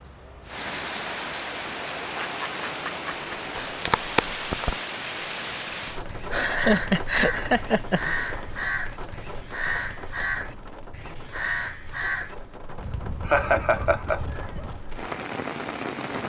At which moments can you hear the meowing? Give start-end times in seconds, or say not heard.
not heard.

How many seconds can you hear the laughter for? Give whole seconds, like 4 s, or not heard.
5 s.